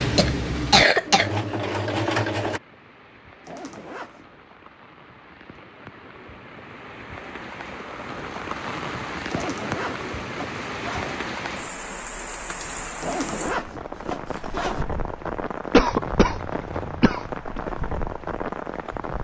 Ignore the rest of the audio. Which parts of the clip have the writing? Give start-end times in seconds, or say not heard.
not heard.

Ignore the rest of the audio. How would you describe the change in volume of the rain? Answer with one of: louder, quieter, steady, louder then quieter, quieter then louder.
louder.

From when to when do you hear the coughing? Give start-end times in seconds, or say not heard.
0.1-1.3, 15.7-17.6.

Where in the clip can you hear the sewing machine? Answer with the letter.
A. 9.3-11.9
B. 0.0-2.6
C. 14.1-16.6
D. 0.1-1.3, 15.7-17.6
B.